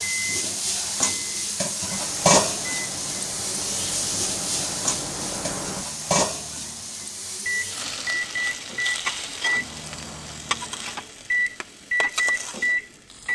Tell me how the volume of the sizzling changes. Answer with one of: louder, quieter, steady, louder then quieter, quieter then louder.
quieter.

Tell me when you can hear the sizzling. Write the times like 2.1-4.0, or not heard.
0.0-13.3.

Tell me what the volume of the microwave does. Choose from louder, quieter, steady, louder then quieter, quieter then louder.
louder.